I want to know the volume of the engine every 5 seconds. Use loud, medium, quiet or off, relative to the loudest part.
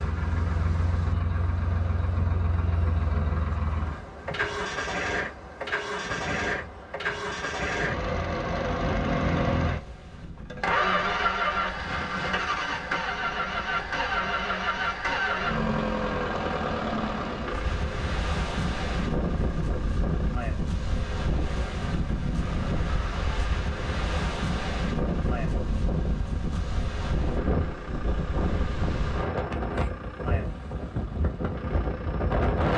medium, loud, loud, loud, quiet, quiet, quiet.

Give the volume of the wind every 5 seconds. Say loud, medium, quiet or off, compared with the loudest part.
quiet, quiet, quiet, loud, loud, loud, loud.